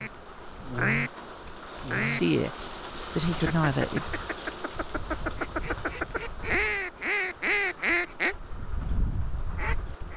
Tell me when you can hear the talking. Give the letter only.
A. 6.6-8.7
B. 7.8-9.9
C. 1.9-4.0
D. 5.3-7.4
C.